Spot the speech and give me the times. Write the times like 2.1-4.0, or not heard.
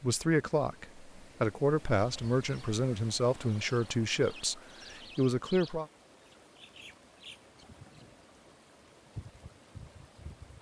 0.0-5.8.